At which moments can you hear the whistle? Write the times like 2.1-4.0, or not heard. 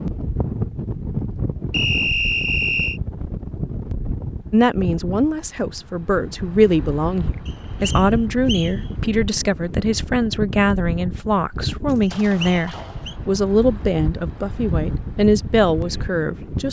1.7-3.0, 7.5-8.8, 12.0-13.2.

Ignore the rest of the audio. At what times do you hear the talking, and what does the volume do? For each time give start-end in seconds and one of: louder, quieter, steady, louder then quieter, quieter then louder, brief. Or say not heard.
4.5-16.6 steady.